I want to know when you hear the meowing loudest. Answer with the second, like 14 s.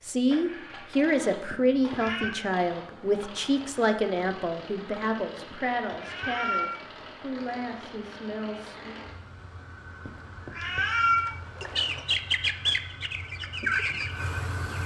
11 s.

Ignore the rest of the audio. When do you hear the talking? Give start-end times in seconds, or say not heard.
0.0-8.9.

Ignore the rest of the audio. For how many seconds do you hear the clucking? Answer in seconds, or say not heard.
3 s.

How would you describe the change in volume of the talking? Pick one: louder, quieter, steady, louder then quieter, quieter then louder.
quieter.